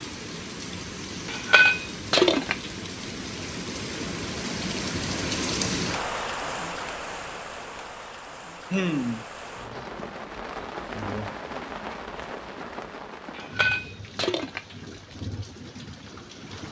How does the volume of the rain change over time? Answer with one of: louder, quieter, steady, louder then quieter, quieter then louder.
louder then quieter.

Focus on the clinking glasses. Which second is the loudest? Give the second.
2 s.